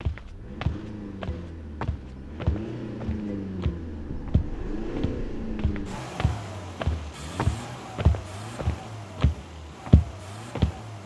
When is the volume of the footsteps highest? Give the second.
10 s.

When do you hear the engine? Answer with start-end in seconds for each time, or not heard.
0.0-11.0.